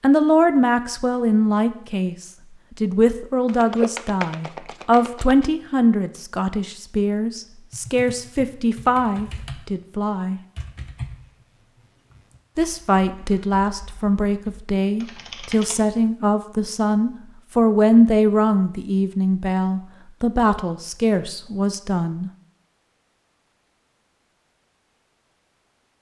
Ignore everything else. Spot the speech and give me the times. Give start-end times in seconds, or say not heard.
0.0-10.4, 12.6-22.3.